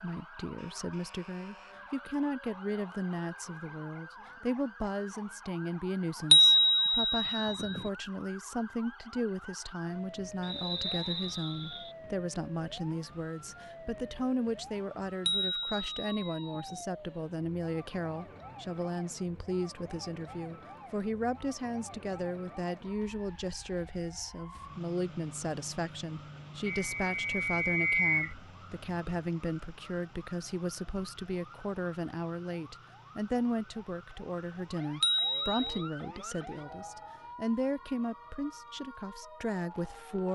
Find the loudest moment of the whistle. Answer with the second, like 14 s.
28 s.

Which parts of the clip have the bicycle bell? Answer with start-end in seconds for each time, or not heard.
6.3-7.8, 15.2-16.8, 35.0-35.8.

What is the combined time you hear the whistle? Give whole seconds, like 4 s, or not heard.
3 s.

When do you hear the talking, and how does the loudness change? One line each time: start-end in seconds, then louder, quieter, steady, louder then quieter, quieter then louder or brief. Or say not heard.
0.0-40.3 steady.